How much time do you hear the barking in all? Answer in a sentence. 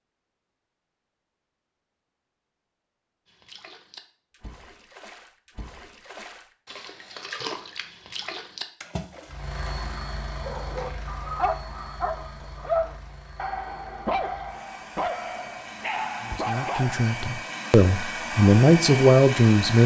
The barking can be heard for 7 seconds in total.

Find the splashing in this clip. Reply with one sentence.
You can hear the splashing from 3.2 to 10.0 s.